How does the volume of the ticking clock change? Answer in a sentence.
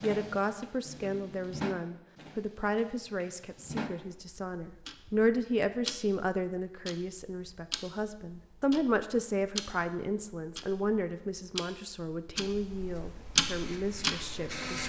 The loudness of the ticking clock goes up.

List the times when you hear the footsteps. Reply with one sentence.
The footsteps can't be heard in this clip.